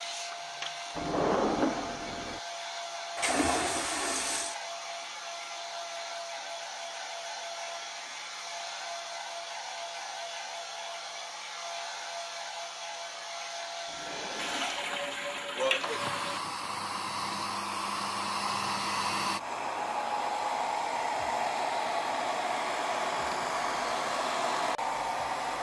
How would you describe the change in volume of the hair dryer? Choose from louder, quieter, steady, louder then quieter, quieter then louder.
louder.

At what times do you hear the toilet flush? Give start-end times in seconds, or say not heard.
3.1-4.5, 14.3-16.4.